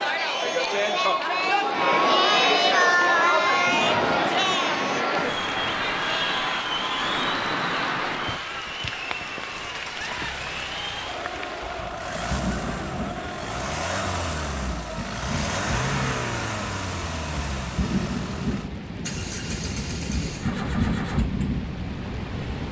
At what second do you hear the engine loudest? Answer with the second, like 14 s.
16 s.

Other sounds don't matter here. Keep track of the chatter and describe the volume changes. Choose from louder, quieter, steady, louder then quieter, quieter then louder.
quieter.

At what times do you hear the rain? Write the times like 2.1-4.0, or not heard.
3.4-22.6.